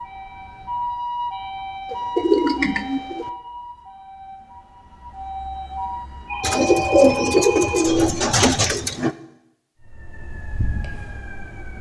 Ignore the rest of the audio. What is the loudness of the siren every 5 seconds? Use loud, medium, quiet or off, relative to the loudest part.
loud, loud, medium.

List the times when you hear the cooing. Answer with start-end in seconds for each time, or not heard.
1.9-3.2, 6.4-9.2.